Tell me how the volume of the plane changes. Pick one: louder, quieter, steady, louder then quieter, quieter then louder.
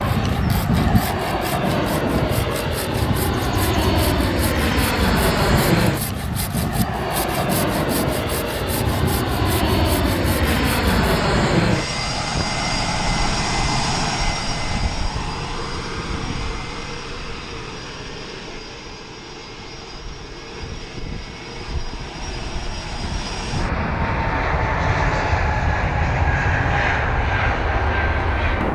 quieter then louder.